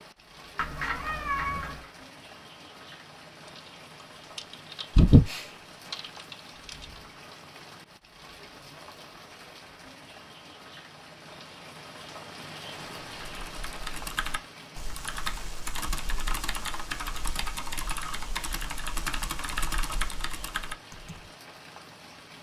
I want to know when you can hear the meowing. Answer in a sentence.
The meowing can be heard from 0.6 to 1.9 s.